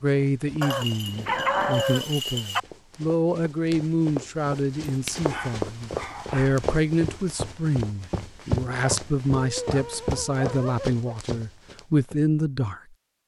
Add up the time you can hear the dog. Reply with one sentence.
The dog can be heard for 6 seconds in total.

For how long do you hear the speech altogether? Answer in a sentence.
You can hear the speech for 13 seconds altogether.